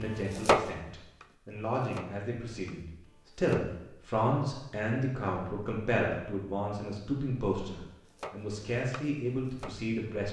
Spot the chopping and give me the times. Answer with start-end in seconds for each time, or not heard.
0.0-3.8, 7.8-9.9.